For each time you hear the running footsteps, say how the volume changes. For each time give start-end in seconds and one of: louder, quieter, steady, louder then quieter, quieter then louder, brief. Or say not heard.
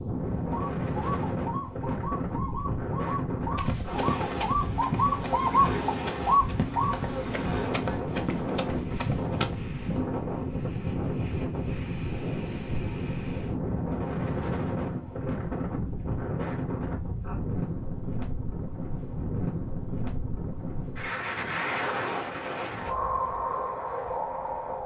3.5-9.6 quieter then louder.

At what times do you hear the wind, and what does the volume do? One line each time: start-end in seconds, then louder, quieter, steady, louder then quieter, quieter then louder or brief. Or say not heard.
0.0-24.8 steady.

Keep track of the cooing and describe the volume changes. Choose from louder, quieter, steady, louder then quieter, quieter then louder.
louder.